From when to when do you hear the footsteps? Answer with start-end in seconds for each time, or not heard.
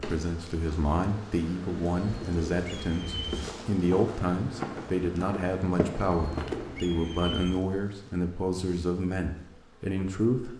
3.2-6.8.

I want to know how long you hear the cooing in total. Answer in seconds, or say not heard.
3 s.